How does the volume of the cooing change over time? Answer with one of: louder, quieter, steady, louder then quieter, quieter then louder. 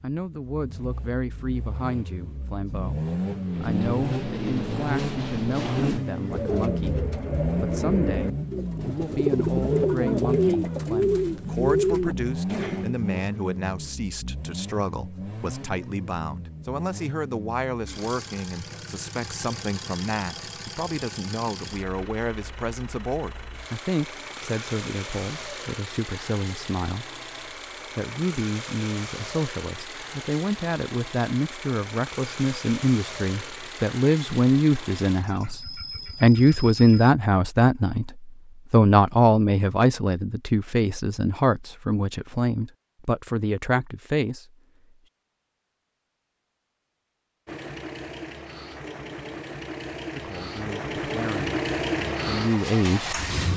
louder.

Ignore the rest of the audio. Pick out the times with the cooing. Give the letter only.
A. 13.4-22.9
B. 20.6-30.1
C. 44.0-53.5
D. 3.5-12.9
D.